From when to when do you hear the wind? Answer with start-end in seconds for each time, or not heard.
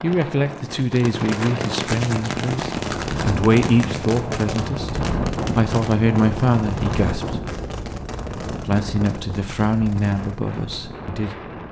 0.0-11.6.